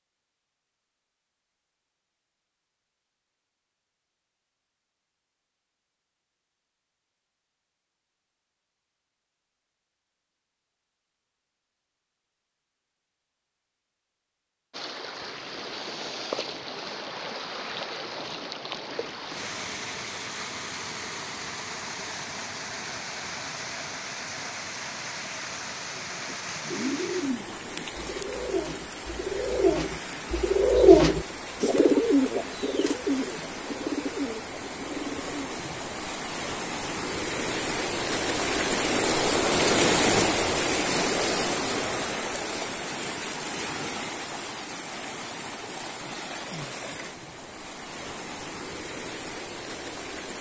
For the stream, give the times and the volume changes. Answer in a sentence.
You can hear the stream from 14.7 to 50.3 s, getting louder then quieter.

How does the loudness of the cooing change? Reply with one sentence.
The loudness of the cooing goes up, then down.